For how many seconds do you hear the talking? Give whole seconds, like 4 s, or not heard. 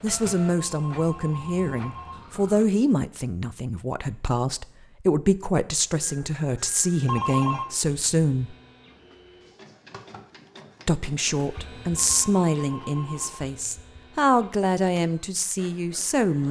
14 s.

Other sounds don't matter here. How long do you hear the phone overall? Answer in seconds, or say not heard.
4 s.